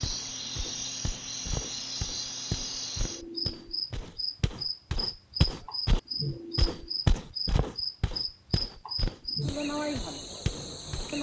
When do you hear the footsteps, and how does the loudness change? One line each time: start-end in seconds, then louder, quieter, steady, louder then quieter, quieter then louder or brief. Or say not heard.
0.0-11.1 louder then quieter.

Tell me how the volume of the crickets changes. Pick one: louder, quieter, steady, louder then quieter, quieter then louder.
steady.